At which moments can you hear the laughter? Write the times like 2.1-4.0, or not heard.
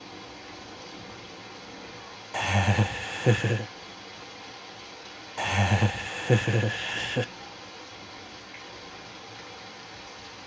2.3-3.6, 5.3-7.2.